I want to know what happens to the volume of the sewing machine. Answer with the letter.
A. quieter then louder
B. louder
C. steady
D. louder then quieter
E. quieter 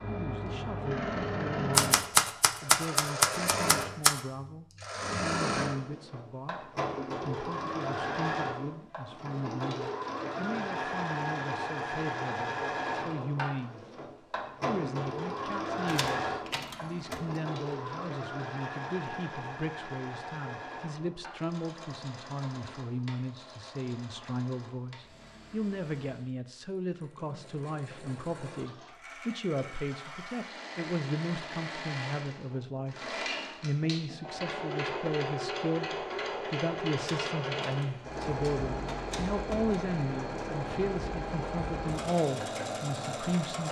A.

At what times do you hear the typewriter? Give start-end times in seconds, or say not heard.
1.7-4.2, 15.8-17.2, 37.0-39.8.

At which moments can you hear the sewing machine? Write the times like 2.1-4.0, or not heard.
0.0-43.6.